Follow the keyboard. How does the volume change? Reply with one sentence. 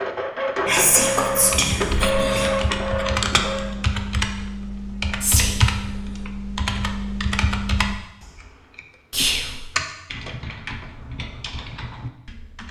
The volume of the keyboard goes down.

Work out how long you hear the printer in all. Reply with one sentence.
The printer can be heard for 4 seconds in total.